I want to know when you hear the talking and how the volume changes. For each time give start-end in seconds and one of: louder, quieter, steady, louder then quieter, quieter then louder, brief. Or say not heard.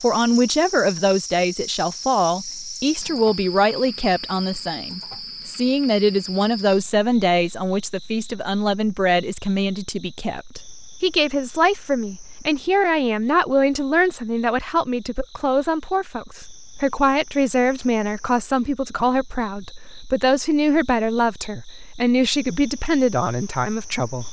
0.0-24.2 steady.